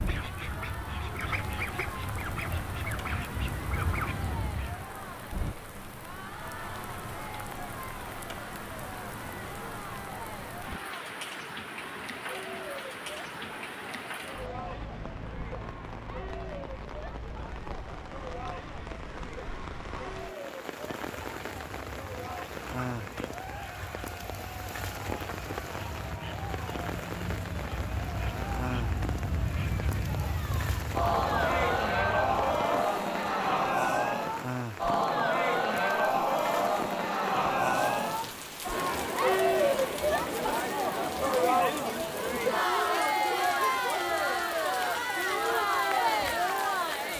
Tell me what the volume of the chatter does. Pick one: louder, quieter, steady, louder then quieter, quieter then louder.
louder.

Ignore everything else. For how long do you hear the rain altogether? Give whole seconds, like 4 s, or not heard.
47 s.